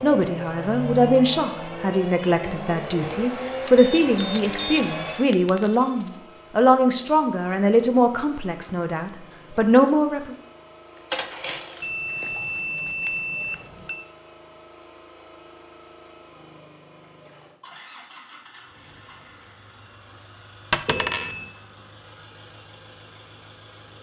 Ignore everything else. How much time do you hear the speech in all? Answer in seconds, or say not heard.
10 s.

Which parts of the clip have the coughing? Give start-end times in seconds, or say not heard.
not heard.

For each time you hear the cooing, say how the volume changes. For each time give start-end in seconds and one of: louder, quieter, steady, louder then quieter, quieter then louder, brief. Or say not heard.
not heard.